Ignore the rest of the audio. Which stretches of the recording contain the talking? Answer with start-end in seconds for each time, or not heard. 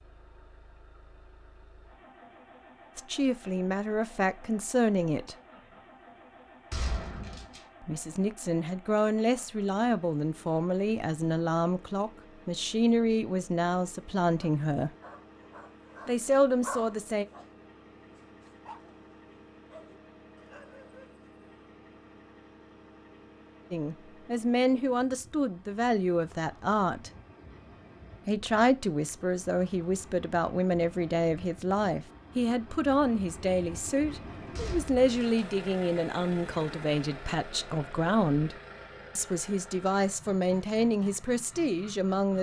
3.0-5.3, 7.8-14.9, 16.1-17.2, 23.7-27.1, 28.2-38.5, 39.1-42.3.